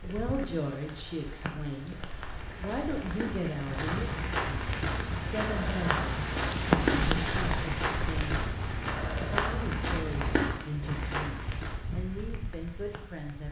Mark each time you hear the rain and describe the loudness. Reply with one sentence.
The rain can be heard from 0.0 to 13.4 s, getting louder then quieter.